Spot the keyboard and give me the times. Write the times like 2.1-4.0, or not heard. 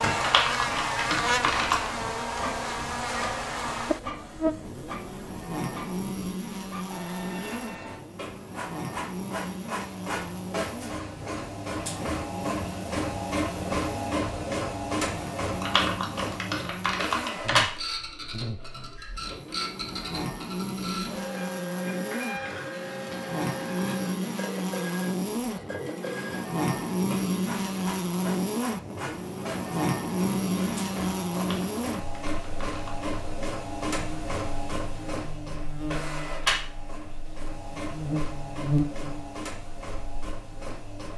0.2-1.9, 15.6-17.6, 31.4-33.0.